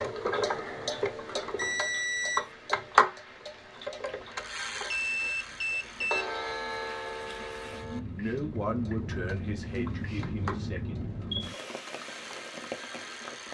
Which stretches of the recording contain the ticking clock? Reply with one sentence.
You can hear the ticking clock from 0.0 to 13.5 s.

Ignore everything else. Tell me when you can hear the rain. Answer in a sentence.
The rain can be heard from 0.0 to 13.5 s.